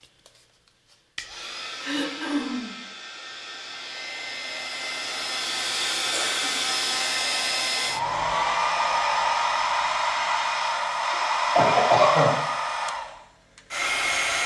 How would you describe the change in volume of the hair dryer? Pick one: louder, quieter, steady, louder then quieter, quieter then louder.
louder.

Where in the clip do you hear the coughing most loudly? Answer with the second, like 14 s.
12 s.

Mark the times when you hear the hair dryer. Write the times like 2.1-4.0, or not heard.
0.2-14.4.